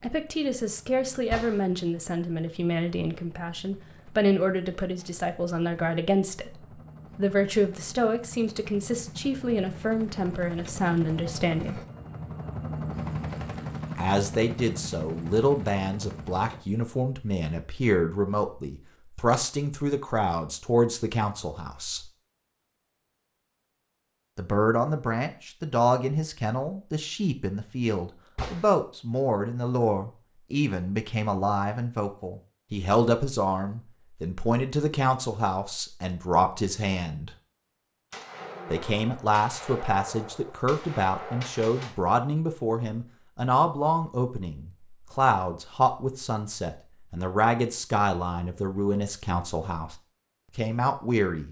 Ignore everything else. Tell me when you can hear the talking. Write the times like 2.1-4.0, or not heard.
0.0-11.8, 13.9-22.1, 24.4-37.3, 38.7-50.0, 50.5-51.4.